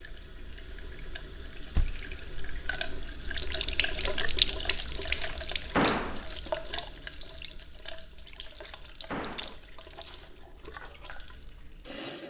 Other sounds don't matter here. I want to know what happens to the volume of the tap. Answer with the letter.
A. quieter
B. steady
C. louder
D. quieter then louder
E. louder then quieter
E.